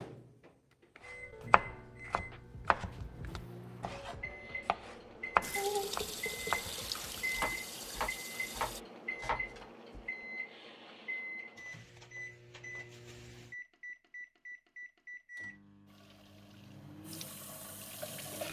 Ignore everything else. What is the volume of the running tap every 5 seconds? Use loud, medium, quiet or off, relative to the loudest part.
off, loud, off, medium.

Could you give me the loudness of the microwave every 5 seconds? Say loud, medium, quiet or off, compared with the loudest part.
medium, loud, loud, medium.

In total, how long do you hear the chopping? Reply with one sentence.
You can hear the chopping for 9 seconds altogether.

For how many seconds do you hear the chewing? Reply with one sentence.
You can't hear the chewing here.